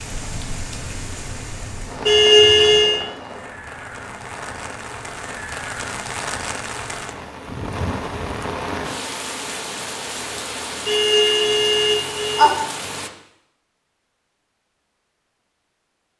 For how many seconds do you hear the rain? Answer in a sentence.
You can hear the rain for 13 seconds altogether.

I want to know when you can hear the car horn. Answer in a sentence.
You can hear the car horn from 2.0 to 3.0 s and from 10.8 to 12.5 s.